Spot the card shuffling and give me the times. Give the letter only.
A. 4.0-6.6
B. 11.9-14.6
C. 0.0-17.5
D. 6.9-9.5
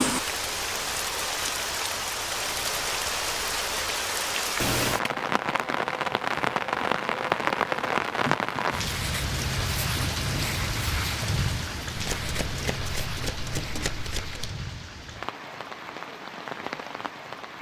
B.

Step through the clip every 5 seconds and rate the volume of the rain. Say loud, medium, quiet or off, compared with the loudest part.
loud, loud, medium, medium.